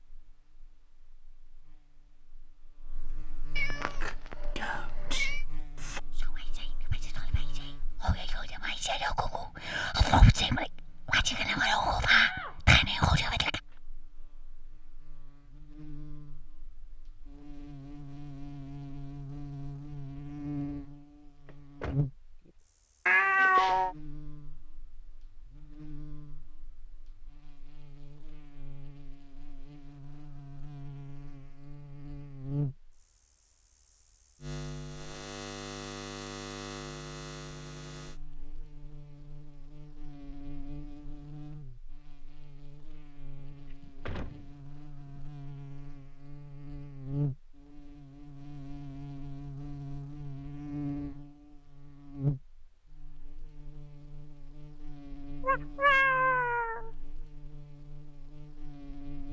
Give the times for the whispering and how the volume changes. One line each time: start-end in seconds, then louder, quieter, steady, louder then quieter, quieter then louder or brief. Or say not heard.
3.8-13.6 quieter then louder.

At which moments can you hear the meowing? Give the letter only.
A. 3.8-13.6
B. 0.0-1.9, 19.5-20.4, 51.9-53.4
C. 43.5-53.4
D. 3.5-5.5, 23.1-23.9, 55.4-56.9
D.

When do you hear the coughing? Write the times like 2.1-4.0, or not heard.
not heard.